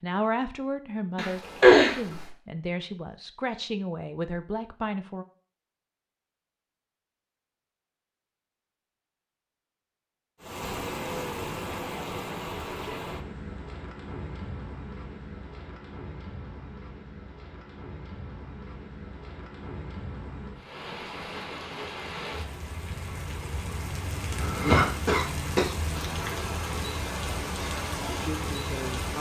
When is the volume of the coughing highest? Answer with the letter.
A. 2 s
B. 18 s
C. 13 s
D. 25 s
A.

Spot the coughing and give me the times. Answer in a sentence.
You can hear the coughing from 1.1 to 2.3 s and from 24.4 to 25.8 s.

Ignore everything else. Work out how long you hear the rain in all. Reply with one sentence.
The rain can be heard for 19 seconds in total.